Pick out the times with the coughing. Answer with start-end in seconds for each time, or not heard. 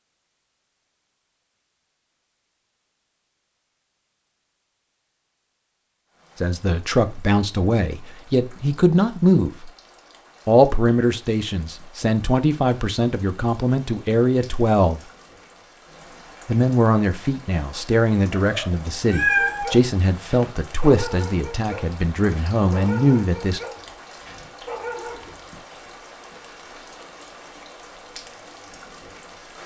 not heard.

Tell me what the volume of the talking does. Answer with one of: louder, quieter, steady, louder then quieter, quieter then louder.
steady.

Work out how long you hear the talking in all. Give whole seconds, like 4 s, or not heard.
15 s.